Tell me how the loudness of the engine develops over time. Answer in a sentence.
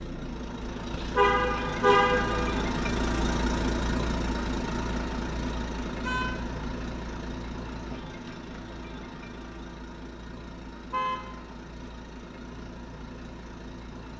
The loudness of the engine goes down.